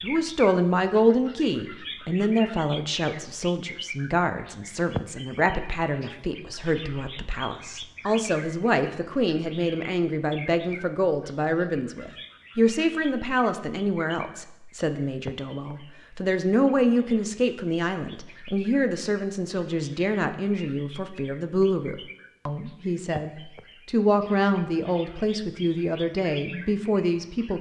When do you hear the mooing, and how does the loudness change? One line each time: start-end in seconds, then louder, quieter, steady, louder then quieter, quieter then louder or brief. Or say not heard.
not heard.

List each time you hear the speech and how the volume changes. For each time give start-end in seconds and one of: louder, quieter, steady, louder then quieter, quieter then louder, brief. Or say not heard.
0.0-27.5 steady.